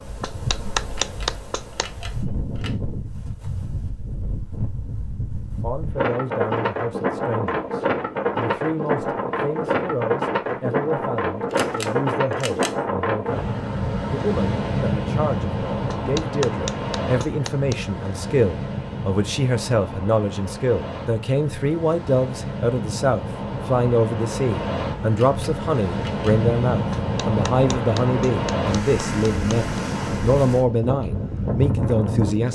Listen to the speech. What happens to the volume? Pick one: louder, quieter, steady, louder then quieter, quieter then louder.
louder.